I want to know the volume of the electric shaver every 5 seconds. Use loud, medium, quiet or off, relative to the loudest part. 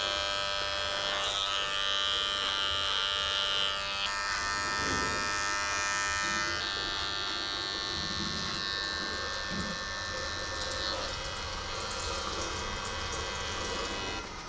loud, loud, medium.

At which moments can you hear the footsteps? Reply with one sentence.
You can't hear the footsteps here.